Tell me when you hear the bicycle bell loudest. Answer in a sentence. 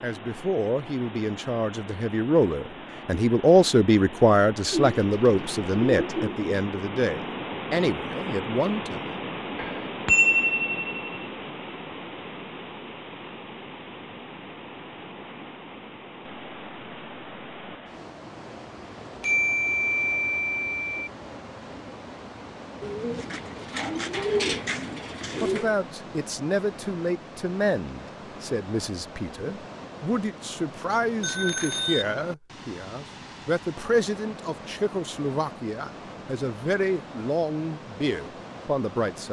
The volume of the bicycle bell peaks at 10 seconds.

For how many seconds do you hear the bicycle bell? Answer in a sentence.
The bicycle bell can be heard for 4 seconds in total.